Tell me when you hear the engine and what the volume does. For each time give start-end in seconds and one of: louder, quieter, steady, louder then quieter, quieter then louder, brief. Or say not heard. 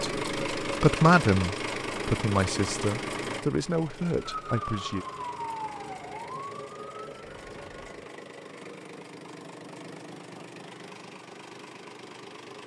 0.0-12.6 quieter.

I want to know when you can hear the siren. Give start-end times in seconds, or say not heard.
4.2-8.0.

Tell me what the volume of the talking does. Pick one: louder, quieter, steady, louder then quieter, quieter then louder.
quieter.